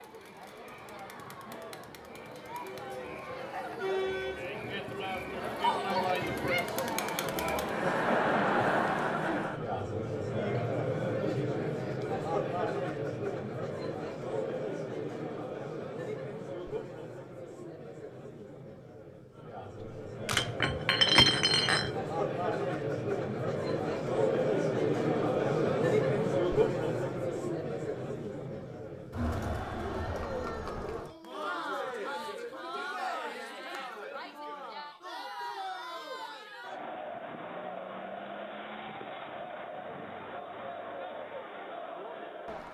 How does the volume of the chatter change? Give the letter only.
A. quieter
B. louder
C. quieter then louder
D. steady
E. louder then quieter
A.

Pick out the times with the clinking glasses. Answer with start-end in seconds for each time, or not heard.
20.3-21.9.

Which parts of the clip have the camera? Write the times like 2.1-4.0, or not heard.
19.8-20.5.